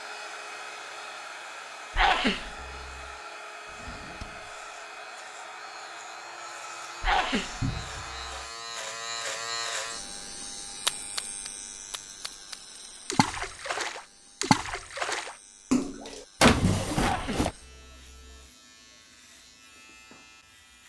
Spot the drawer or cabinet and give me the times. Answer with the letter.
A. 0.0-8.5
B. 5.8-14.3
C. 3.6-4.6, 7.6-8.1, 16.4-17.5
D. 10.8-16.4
C.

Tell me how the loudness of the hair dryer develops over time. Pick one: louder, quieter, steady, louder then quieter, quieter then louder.
steady.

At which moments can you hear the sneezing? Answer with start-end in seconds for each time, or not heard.
1.9-3.1, 7.0-8.4, 16.9-18.4.